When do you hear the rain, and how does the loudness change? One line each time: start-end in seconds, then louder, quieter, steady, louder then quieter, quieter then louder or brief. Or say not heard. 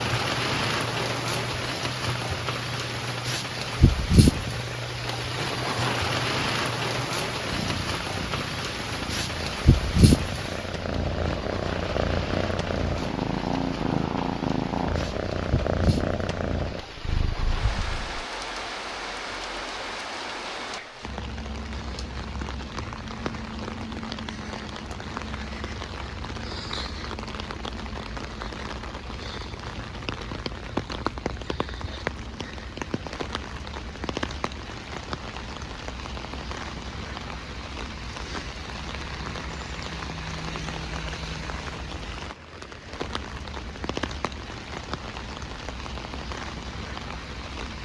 0.0-47.7 quieter.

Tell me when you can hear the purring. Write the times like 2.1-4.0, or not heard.
0.0-18.2.